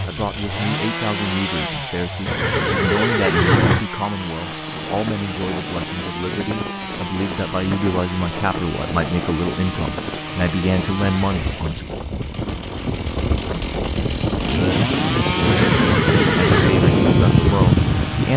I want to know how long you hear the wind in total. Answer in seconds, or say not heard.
14 s.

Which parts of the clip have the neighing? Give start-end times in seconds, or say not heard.
2.2-3.9, 15.4-16.8.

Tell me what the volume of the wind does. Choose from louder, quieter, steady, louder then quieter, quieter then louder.
louder.